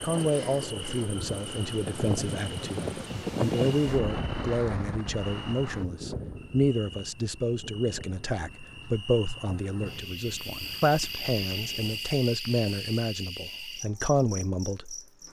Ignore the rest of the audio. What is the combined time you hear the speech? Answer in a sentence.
The speech can be heard for 15 seconds in total.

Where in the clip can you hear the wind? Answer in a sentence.
The wind can be heard from 0.0 to 12.0 s.